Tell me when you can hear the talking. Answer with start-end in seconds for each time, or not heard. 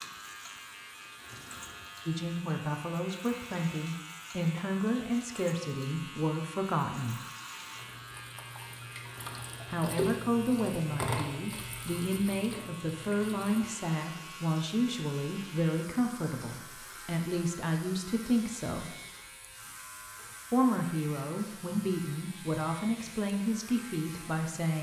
2.0-7.2, 9.7-18.9, 20.5-24.7.